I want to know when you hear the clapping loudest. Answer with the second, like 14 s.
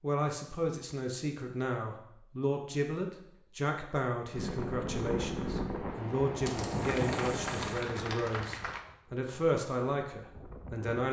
8 s.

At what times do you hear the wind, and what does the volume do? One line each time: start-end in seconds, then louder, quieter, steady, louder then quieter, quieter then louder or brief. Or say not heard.
4.3-11.0 quieter.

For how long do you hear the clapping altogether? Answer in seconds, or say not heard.
2 s.